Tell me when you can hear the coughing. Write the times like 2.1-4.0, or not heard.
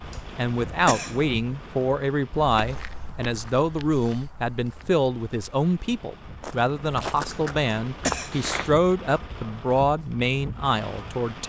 0.1-1.2, 7.3-8.3.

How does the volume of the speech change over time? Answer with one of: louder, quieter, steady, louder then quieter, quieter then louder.
steady.